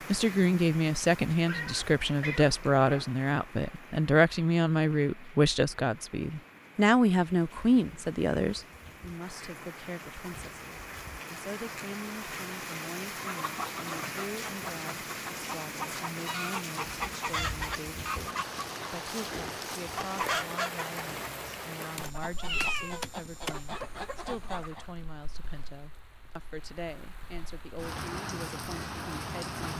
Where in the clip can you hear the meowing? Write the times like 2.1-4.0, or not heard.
1.4-3.1, 21.9-23.9.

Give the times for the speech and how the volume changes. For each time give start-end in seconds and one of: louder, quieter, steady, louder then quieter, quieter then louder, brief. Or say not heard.
0.1-29.7 quieter.